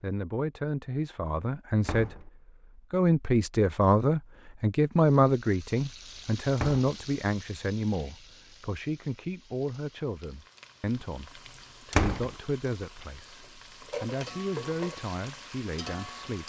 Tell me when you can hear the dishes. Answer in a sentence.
The dishes can't be heard in this clip.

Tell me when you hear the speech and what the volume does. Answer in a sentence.
The speech can be heard briefly from 0.0 to 2.3 s; and from 2.9 to 16.4 s, getting quieter.